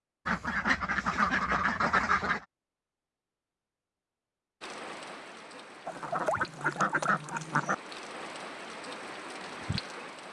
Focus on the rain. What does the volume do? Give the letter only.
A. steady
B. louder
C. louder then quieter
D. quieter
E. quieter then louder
B.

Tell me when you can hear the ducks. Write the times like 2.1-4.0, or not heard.
0.2-2.5, 5.8-7.8.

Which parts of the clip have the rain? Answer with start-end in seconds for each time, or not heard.
4.6-10.2.